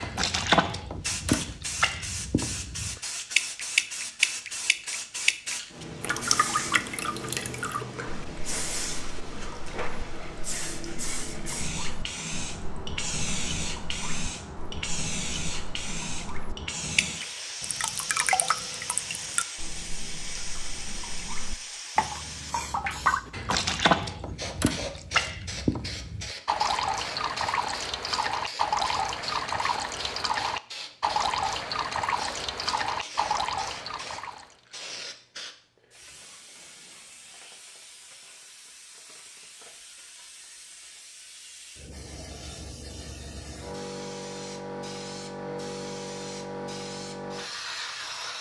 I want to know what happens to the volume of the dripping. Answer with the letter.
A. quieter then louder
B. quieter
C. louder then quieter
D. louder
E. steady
A.